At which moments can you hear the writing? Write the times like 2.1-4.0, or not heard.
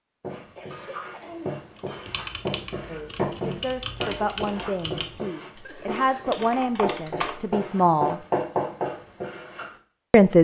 0.2-9.8.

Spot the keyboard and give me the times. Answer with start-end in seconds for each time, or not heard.
1.8-8.1.